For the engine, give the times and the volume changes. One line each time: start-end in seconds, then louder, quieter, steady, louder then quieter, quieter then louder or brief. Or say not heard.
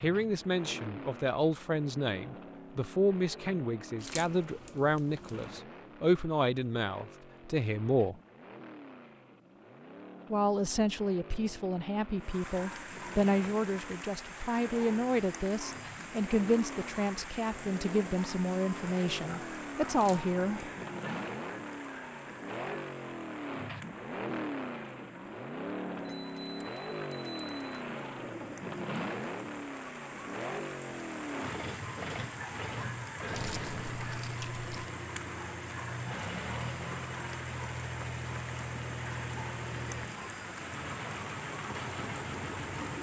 0.0-42.9 louder.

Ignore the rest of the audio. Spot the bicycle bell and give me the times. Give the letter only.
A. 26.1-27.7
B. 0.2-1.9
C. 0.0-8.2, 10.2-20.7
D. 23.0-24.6
A.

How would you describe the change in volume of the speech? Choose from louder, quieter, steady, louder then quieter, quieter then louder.
steady.